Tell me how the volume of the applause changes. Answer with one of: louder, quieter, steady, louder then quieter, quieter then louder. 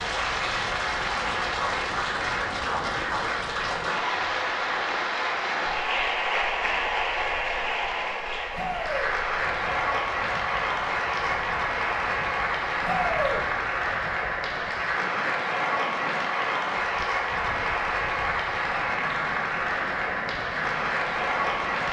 steady.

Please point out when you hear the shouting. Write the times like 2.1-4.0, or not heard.
8.5-9.1, 12.8-13.4.